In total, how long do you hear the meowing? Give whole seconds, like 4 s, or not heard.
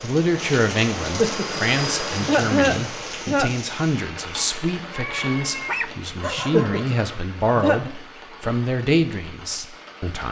2 s.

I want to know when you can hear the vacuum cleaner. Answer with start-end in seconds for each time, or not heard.
0.0-3.3.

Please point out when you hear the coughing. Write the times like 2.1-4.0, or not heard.
1.0-3.6, 6.2-8.0.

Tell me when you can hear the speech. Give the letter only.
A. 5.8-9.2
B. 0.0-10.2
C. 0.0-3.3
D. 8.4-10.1
B.